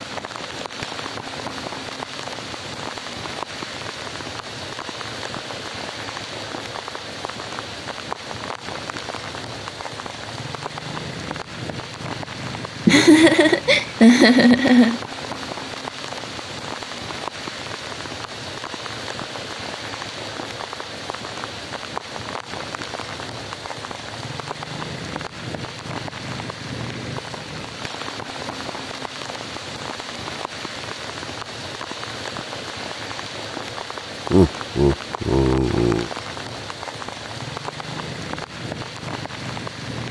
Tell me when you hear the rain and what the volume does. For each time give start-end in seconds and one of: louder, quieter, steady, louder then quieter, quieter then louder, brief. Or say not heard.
0.0-40.0 steady.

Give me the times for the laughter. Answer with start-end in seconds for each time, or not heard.
12.8-15.0, 34.3-36.1.